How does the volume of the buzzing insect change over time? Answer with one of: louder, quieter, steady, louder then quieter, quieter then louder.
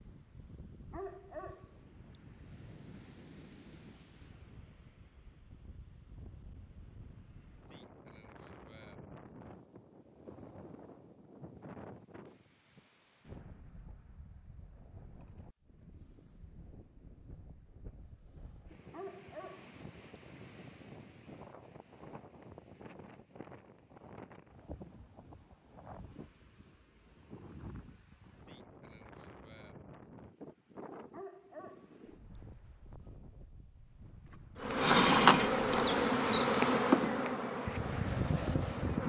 quieter.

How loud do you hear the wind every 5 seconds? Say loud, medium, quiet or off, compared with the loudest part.
quiet, quiet, quiet, quiet, quiet, quiet, quiet, loud.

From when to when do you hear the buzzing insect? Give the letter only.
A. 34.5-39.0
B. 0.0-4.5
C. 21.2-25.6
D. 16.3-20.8
A.